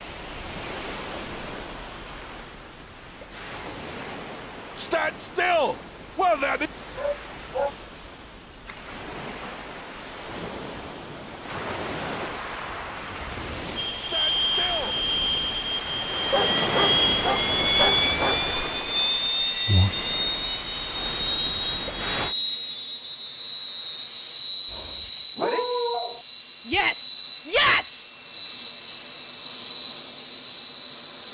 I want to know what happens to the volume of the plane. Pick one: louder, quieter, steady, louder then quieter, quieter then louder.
quieter.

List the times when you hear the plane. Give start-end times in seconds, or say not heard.
13.8-31.3.